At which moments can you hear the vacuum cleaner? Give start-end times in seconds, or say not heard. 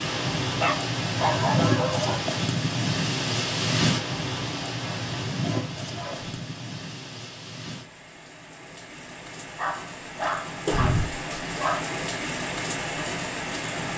not heard.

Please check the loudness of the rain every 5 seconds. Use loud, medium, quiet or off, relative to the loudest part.
loud, medium, medium.